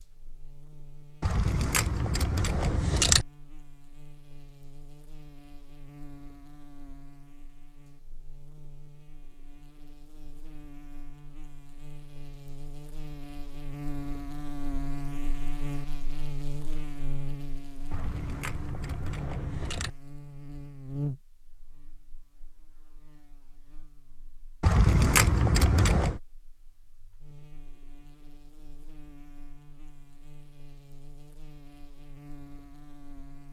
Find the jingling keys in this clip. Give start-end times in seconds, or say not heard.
1.2-3.2, 17.9-19.9, 24.6-26.2.